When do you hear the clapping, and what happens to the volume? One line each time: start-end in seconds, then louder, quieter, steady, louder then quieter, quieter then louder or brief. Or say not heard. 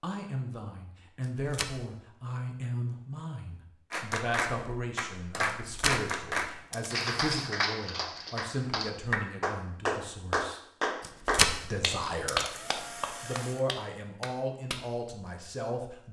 3.9-15.0 quieter.